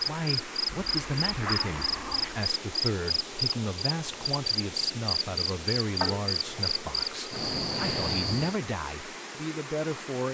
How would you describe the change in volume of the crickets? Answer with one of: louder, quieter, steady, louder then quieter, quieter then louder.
steady.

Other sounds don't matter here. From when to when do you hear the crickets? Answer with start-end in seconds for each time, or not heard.
0.0-8.6.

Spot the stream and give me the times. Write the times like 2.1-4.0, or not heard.
0.0-10.2.